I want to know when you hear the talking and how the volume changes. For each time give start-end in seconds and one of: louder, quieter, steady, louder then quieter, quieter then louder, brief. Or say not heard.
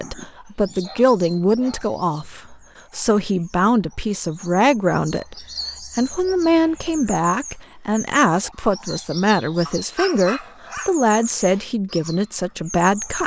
0.0-13.2 steady.